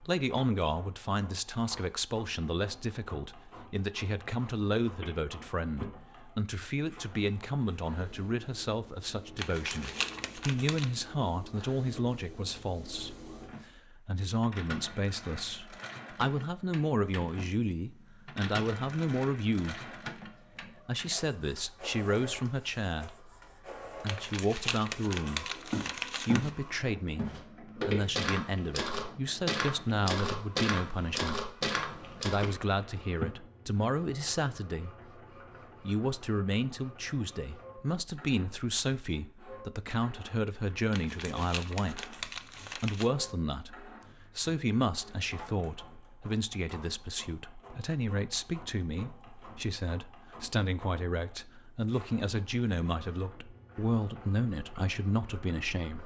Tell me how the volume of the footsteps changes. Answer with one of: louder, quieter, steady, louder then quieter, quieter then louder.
steady.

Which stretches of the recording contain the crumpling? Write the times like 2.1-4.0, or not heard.
9.3-10.9, 24.1-26.5, 40.9-43.1.